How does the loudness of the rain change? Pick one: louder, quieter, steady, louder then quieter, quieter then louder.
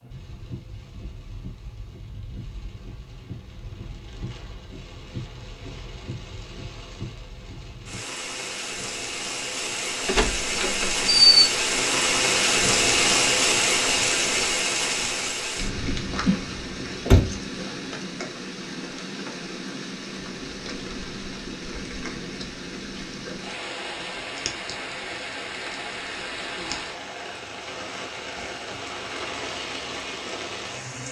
louder then quieter.